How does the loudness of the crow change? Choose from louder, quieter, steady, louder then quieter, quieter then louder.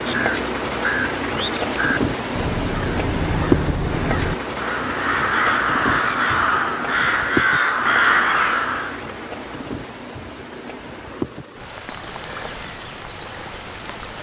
louder.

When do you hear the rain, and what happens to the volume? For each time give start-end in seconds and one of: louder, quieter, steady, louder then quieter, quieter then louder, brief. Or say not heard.
0.0-14.1 quieter.